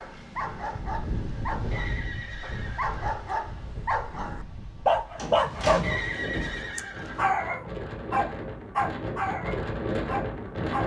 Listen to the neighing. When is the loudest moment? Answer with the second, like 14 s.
6 s.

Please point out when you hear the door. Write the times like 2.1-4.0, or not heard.
5.2-6.7.